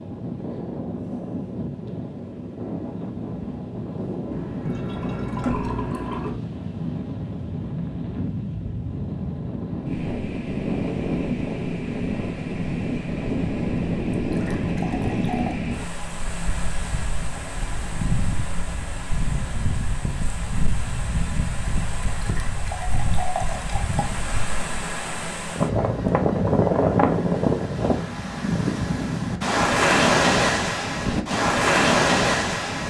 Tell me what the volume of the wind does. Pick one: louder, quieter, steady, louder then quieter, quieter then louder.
louder.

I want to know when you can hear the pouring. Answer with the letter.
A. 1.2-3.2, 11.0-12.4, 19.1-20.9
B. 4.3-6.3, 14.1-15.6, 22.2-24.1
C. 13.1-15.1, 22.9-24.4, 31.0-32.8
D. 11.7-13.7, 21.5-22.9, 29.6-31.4
B.